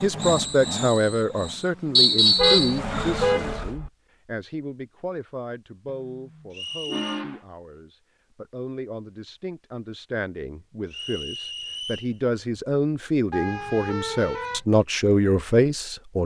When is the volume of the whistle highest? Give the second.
2 s.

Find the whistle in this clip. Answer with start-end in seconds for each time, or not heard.
1.9-2.8, 6.5-7.2, 10.9-12.1.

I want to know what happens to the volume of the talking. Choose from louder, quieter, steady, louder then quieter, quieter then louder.
quieter then louder.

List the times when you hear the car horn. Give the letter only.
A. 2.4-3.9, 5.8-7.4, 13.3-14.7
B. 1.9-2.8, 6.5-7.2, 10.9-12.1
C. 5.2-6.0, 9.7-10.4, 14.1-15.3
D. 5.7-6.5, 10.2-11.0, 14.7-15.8
A.